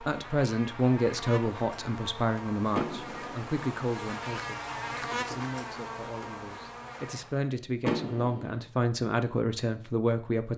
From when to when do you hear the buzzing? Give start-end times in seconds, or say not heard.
0.0-7.5.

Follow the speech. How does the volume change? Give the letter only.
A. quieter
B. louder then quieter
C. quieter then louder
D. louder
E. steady
C.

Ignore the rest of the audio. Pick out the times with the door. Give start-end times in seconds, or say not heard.
2.7-3.5, 7.8-8.6.